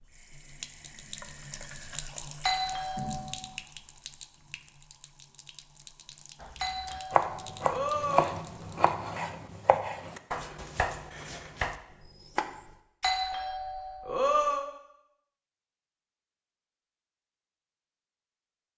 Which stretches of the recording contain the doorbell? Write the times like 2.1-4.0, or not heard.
2.4-3.4, 6.6-8.3, 13.0-14.7.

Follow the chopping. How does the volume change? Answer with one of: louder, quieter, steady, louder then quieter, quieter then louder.
quieter.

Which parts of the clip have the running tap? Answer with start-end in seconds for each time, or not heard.
0.0-8.9.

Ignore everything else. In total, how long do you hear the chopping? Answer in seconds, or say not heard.
6 s.